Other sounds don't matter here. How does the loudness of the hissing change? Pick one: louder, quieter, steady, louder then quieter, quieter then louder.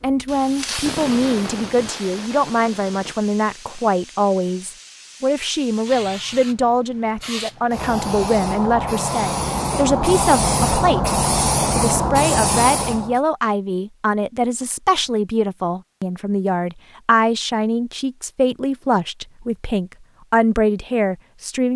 quieter then louder.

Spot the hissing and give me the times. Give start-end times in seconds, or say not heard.
0.0-13.2.